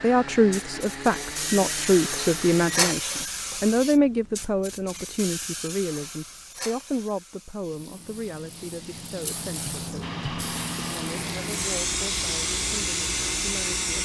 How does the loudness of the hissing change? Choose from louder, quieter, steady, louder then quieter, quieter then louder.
quieter then louder.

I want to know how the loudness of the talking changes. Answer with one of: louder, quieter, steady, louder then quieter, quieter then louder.
quieter.